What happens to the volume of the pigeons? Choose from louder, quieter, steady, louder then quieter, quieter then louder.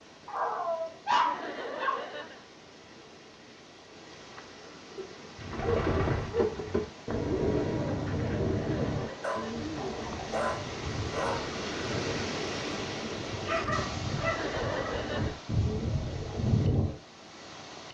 quieter then louder.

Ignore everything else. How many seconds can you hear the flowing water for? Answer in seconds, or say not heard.
18 s.